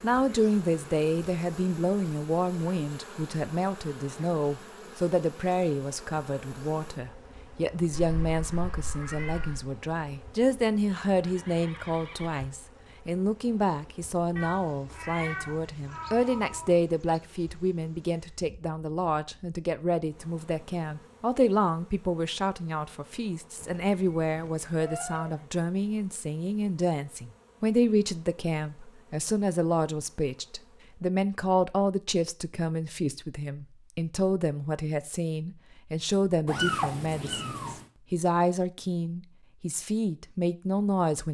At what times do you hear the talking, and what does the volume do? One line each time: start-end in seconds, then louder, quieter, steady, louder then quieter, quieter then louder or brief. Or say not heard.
0.0-41.2 steady.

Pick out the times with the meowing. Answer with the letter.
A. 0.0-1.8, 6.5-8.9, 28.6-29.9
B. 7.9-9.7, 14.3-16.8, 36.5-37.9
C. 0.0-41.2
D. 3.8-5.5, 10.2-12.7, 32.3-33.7
B.